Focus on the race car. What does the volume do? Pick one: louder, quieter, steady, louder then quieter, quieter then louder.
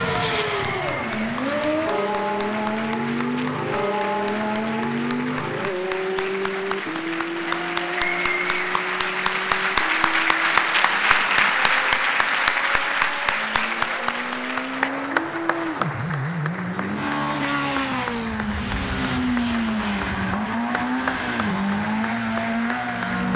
quieter then louder.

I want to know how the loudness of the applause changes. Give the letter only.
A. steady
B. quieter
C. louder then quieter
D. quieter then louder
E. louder
C.